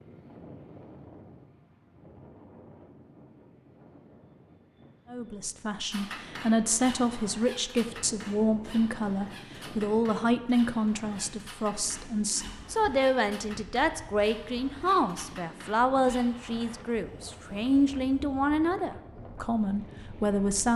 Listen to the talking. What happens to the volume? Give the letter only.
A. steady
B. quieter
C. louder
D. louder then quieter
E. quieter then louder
A.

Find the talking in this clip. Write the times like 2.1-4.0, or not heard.
5.1-20.7.